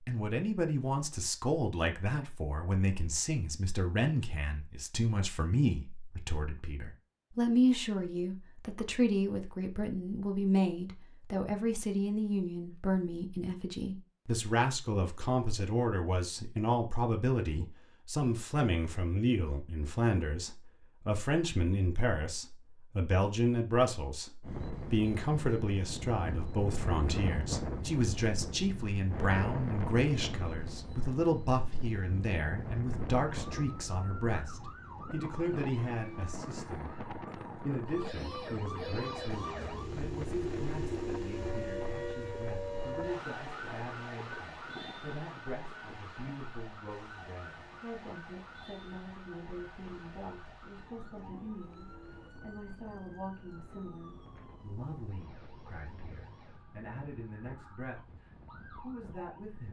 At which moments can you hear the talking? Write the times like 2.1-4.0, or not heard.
0.1-59.6.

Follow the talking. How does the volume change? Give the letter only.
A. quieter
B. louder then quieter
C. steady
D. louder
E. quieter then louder
A.